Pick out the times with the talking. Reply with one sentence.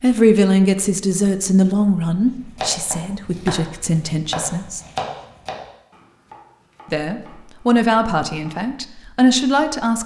You can hear the talking from 0.0 to 4.8 s and from 6.9 to 10.0 s.